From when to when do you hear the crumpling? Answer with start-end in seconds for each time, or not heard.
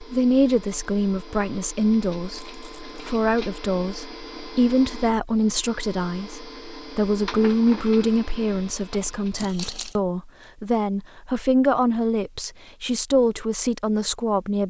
2.4-3.0, 9.3-10.0.